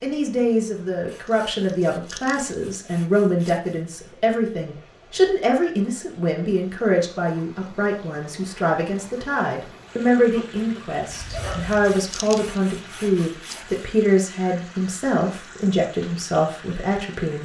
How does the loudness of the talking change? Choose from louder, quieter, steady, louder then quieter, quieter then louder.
steady.